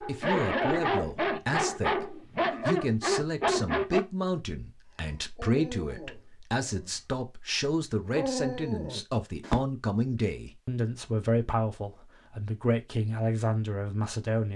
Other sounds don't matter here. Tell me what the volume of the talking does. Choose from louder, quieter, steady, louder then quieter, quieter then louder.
steady.